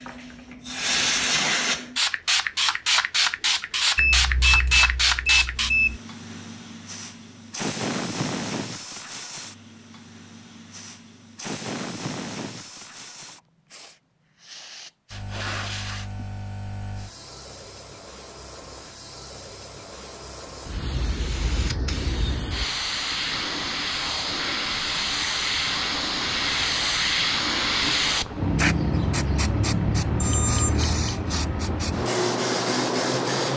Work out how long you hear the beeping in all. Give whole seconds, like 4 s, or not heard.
3 s.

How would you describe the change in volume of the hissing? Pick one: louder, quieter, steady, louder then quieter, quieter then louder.
quieter then louder.